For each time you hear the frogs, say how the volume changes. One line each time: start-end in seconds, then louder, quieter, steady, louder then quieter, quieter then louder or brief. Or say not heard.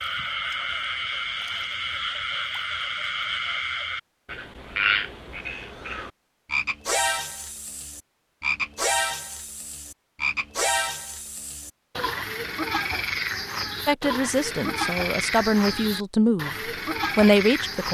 0.0-17.8 steady.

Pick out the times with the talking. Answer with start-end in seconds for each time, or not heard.
13.8-17.8.